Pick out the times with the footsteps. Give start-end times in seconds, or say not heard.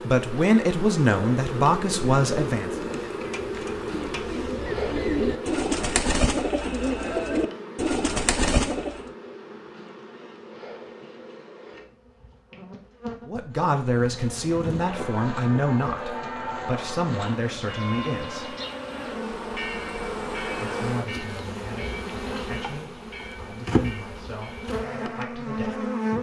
not heard.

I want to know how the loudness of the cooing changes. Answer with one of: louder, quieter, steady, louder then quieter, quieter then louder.
louder.